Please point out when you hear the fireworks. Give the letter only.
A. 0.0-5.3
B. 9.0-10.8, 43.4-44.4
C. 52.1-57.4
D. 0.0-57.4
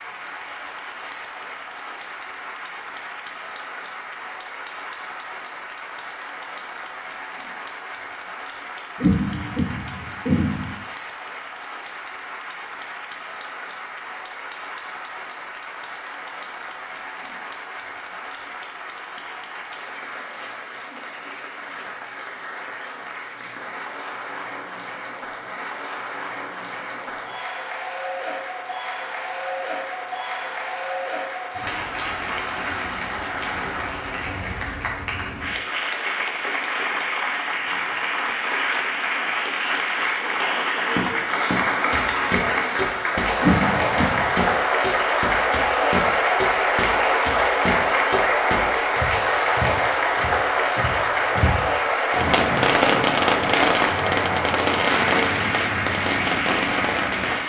C.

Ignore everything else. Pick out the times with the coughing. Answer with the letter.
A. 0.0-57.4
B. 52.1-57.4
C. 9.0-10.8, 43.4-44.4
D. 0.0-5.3
C.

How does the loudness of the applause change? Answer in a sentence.
The volume of the applause goes up.